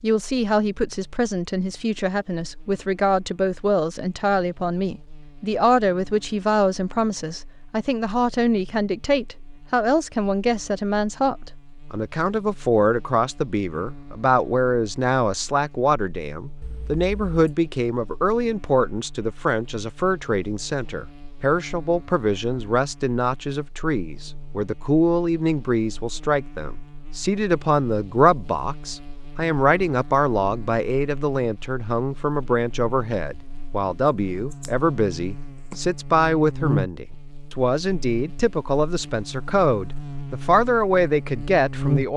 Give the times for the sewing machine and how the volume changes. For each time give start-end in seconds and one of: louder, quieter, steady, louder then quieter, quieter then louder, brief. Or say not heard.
not heard.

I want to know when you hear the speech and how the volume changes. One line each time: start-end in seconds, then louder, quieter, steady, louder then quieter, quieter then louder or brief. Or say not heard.
0.0-42.1 steady.